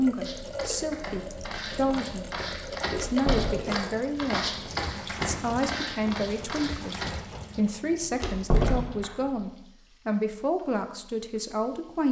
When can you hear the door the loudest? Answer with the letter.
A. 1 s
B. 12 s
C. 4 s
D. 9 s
D.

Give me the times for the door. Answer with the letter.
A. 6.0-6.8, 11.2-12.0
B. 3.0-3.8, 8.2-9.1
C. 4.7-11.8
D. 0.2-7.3
B.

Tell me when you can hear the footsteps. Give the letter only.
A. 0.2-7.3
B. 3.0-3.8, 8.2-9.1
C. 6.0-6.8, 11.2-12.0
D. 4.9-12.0
A.